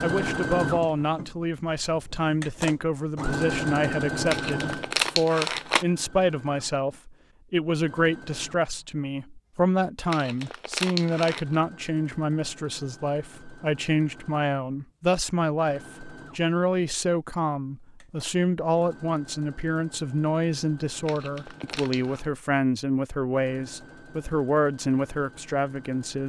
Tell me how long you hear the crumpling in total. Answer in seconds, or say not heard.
4 s.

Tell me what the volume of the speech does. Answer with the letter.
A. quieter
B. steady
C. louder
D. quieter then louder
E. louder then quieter
B.